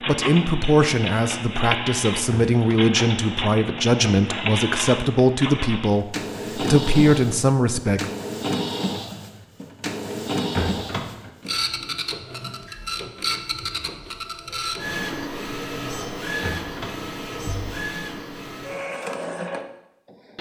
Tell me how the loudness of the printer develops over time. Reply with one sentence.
The loudness of the printer stays about the same.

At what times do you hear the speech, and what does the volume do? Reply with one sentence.
The speech can be heard from 0.1 to 8.1 s, at a steady volume.